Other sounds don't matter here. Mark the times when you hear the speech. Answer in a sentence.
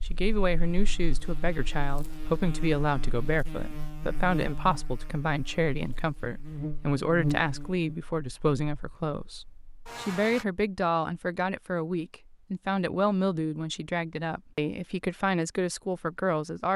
The speech can be heard from 0.0 to 16.7 s.